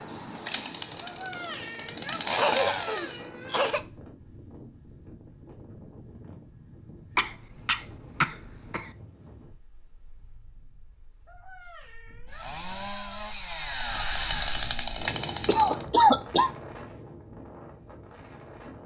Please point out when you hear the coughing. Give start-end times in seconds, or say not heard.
2.4-3.8, 7.2-8.9, 15.4-16.5.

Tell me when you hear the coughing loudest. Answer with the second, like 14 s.
16 s.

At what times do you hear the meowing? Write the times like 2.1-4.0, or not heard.
1.0-3.7, 11.2-13.3.